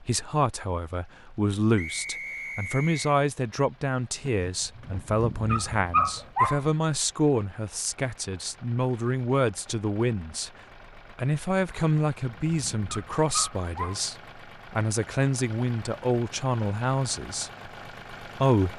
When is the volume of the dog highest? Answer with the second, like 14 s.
6 s.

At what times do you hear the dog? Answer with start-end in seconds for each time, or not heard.
4.2-6.7, 11.7-14.0.